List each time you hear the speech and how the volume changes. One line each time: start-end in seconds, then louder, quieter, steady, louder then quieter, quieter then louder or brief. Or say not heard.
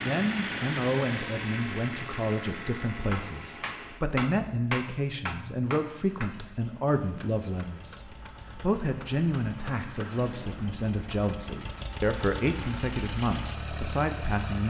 0.0-14.6 steady.